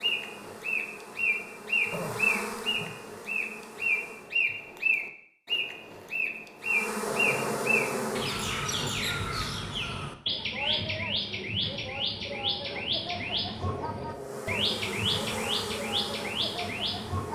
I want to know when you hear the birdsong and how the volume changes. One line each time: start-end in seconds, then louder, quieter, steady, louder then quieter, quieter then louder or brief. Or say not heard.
0.0-17.3 steady.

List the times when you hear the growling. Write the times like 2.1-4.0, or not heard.
1.9-3.0, 7.0-8.9, 13.6-14.9.